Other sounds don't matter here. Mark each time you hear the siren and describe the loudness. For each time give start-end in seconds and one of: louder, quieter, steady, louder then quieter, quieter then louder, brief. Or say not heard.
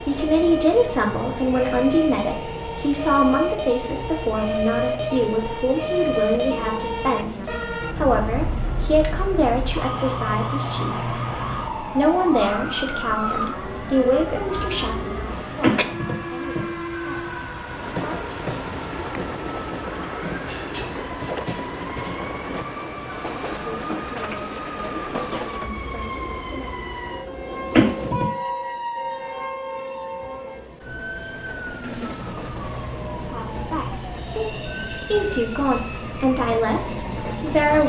0.0-37.8 quieter.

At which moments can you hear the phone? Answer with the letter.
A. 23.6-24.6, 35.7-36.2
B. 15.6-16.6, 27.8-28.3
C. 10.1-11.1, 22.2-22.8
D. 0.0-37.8
B.